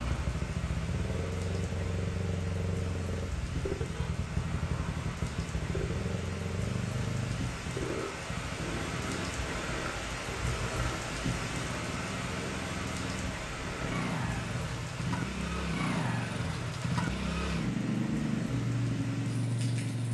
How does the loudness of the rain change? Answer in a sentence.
The loudness of the rain goes up, then down.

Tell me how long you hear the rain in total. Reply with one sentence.
The rain can be heard for 20 seconds in total.